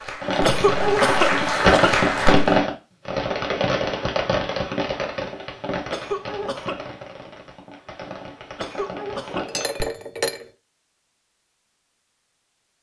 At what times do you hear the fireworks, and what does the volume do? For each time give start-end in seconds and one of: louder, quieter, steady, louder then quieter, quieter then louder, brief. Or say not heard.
0.2-9.8 quieter.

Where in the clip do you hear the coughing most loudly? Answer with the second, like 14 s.
1 s.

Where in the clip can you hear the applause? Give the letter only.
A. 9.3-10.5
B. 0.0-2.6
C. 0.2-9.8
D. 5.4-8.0
B.